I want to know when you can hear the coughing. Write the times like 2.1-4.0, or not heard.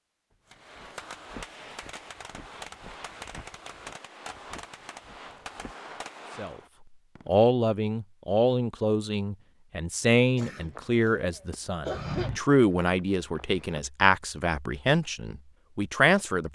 10.3-12.3.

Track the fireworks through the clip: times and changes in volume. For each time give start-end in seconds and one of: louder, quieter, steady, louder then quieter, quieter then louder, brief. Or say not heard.
0.5-7.3 steady.